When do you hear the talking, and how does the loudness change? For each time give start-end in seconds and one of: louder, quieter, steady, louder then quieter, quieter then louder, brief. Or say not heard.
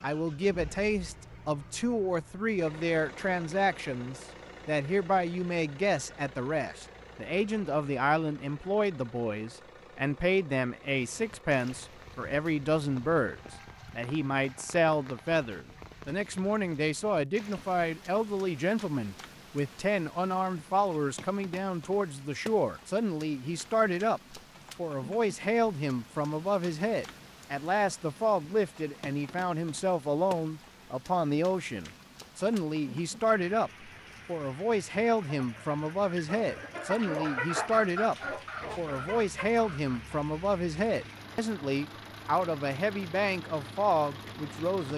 0.0-38.1 steady
38.8-44.9 steady.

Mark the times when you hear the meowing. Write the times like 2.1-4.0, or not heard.
not heard.